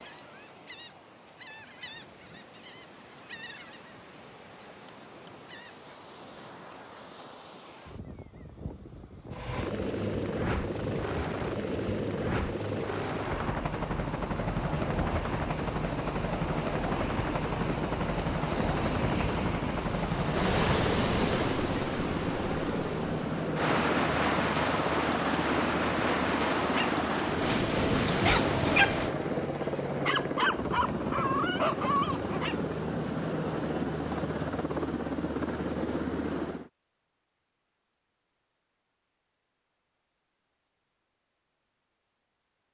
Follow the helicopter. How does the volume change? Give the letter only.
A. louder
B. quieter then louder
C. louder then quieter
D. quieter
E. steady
E.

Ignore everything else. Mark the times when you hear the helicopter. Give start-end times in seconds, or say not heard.
9.3-36.7.